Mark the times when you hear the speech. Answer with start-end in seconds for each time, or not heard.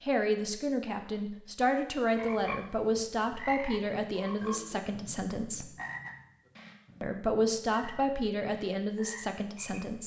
0.0-5.7, 7.0-10.0.